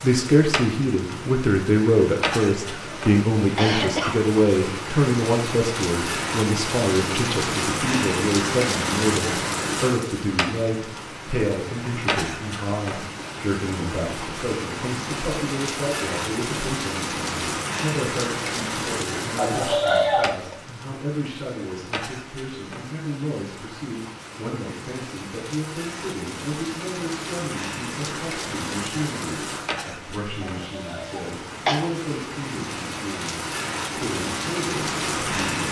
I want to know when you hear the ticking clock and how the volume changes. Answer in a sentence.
The ticking clock can't be heard in this clip.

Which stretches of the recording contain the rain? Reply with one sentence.
You can hear the rain from 0.0 to 35.6 s.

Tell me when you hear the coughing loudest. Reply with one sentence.
The loudest moment of the coughing is at 20 seconds.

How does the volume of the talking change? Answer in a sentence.
The loudness of the talking goes down.